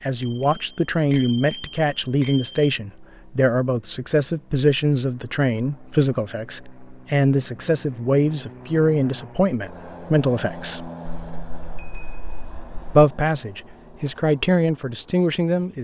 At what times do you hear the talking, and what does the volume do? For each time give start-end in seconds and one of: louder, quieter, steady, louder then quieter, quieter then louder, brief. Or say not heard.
0.0-10.9 steady
12.9-15.7 brief.